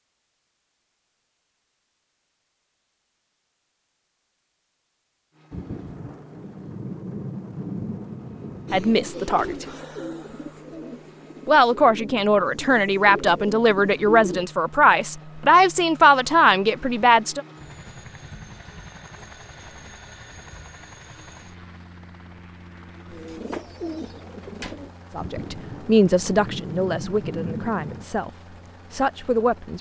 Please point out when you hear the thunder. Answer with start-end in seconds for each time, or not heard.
5.5-9.2, 25.1-28.1.